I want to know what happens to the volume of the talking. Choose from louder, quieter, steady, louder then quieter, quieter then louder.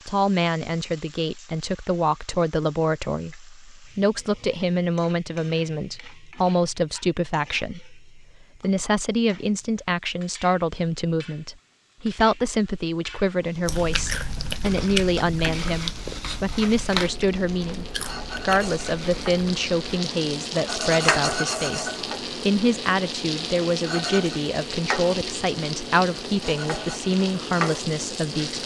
steady.